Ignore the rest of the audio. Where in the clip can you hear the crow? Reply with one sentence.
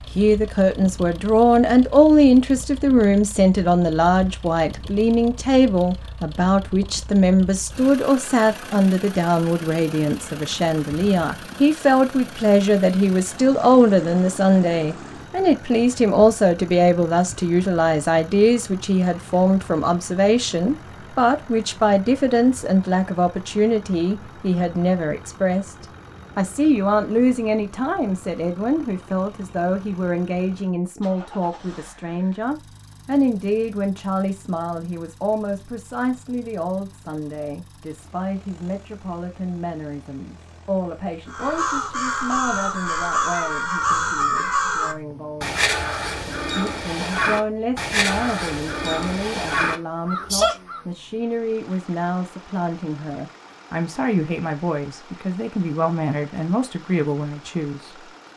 You can hear the crow from 41.3 to 50.8 s.